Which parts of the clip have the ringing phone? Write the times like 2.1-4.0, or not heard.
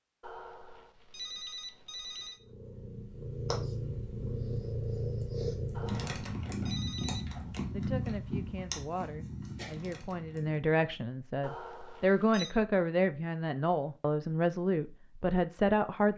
0.2-2.4, 5.7-7.2, 11.4-12.6.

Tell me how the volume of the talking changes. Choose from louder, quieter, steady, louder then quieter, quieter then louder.
louder.